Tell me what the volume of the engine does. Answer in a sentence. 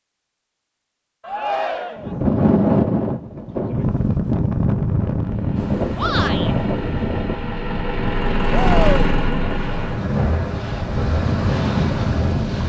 The loudness of the engine goes up, then down.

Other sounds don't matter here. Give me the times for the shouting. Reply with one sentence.
You can hear the shouting from 1.2 to 2.1 s, from 6.0 to 6.5 s and from 8.5 to 9.1 s.